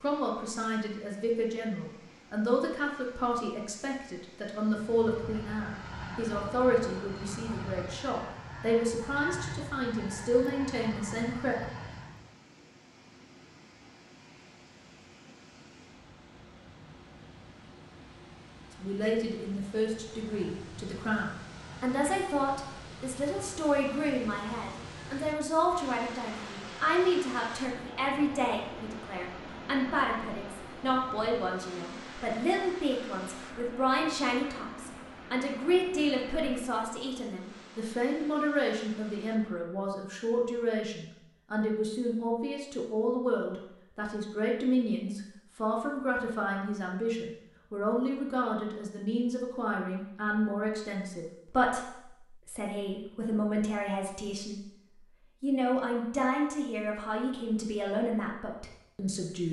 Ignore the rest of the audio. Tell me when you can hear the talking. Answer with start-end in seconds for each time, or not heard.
0.0-11.6, 18.8-54.6, 55.4-59.4.